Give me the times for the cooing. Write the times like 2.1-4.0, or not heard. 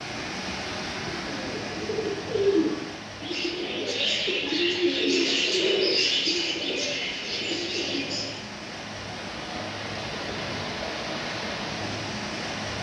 0.9-8.4.